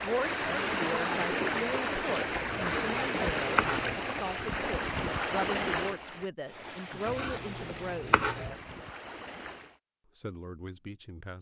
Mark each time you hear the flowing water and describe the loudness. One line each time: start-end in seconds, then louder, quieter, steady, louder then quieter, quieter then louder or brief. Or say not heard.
0.0-9.8 quieter.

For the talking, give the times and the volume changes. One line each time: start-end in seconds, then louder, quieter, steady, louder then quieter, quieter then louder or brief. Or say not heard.
0.0-8.2 steady
10.2-11.3 brief.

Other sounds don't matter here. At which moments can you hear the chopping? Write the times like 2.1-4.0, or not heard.
2.5-4.0, 7.0-8.6.